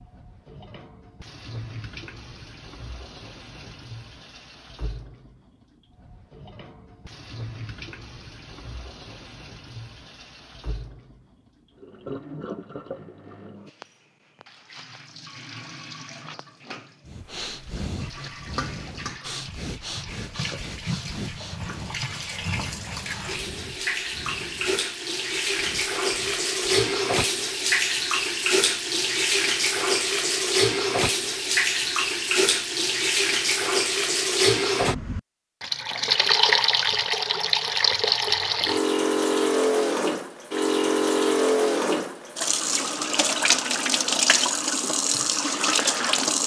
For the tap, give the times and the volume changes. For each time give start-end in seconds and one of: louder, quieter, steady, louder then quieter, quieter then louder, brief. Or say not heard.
0.0-46.4 louder.